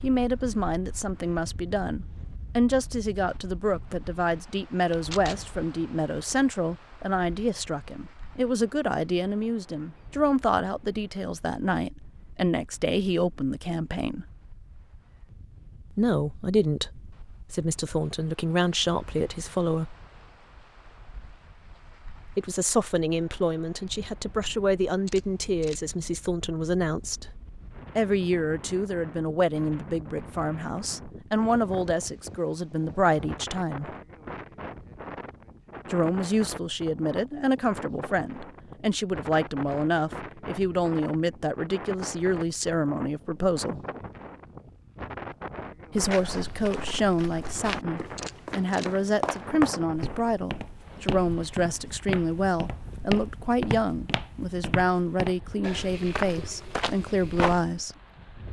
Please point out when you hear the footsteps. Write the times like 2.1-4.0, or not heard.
46.0-57.6.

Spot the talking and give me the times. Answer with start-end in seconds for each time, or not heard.
0.0-14.2, 15.9-19.9, 22.2-27.4, 27.9-33.9, 35.9-43.8, 45.9-58.0.